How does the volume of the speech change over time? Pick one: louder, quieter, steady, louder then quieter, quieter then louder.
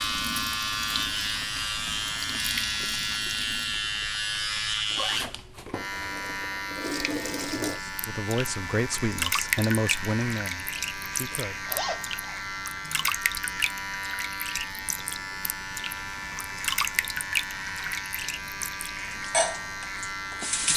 quieter.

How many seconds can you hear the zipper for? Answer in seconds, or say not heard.
3 s.